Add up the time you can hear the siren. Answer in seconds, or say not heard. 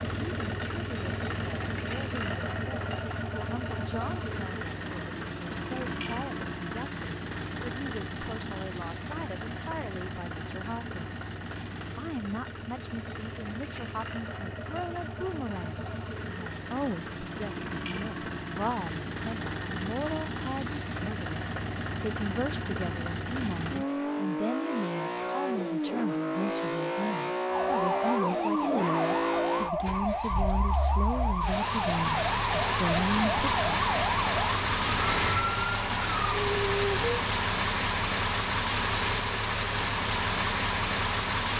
10 s.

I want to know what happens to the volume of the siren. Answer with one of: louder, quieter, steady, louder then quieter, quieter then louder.
steady.